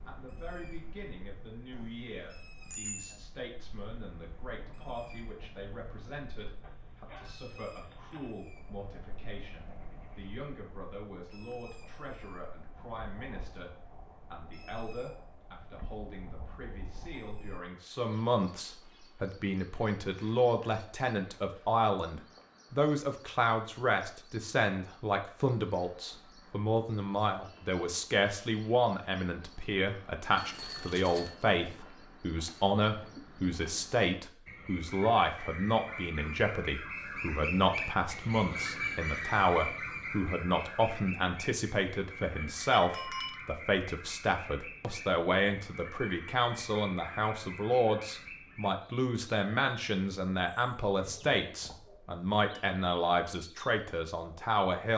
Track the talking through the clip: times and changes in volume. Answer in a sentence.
You can hear the talking from 0.1 to 13.7 s, at a steady volume; and from 14.3 to 54.9 s, at a steady volume.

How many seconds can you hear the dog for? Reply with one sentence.
The dog can be heard for 2 seconds in total.